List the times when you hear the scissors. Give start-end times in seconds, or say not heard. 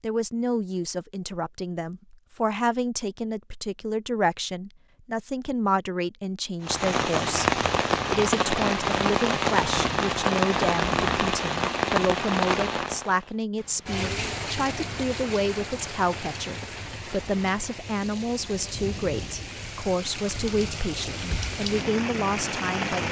not heard.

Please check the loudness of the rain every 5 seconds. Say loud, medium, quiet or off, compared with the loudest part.
off, loud, loud, quiet, medium.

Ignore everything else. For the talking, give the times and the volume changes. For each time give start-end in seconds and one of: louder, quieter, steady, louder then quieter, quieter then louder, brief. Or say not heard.
0.0-23.0 steady.